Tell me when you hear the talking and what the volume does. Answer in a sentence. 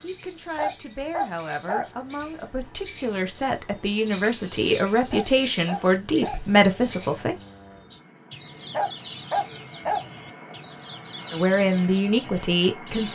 You can hear the talking from 0.0 to 7.3 s, getting louder; and briefly from 11.3 to 13.0 s.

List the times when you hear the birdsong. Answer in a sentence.
You can hear the birdsong from 0.0 to 13.0 s.